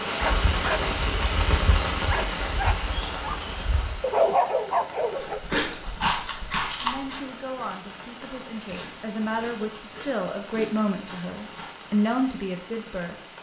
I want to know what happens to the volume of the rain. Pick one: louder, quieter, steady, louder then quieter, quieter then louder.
quieter.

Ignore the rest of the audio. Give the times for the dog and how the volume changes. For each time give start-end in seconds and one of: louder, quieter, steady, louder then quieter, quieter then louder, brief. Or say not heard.
0.1-5.4 louder.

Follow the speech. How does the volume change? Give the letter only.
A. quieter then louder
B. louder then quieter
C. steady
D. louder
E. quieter
D.